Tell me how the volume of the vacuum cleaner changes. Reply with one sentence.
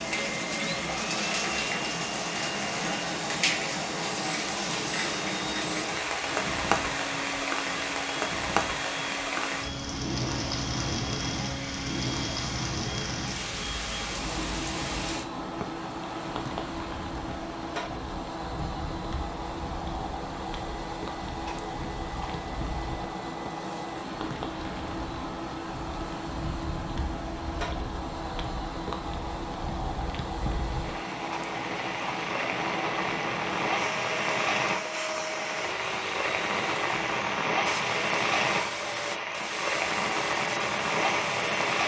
The volume of the vacuum cleaner stays about the same.